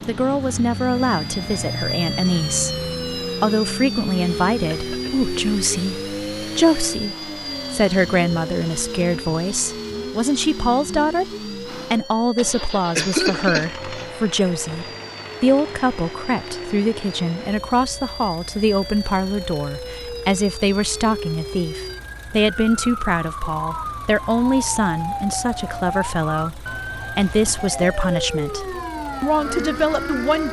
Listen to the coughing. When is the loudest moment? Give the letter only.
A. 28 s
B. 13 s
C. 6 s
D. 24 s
B.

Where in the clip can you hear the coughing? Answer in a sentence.
The coughing can be heard from 4.7 to 5.2 s, from 12.9 to 14.1 s and from 27.4 to 28.1 s.